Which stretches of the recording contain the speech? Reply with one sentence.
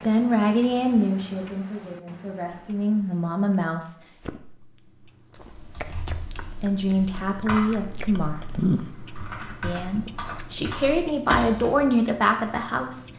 You can hear the speech from 0.0 to 4.0 s, from 6.4 to 8.4 s and from 9.6 to 13.1 s.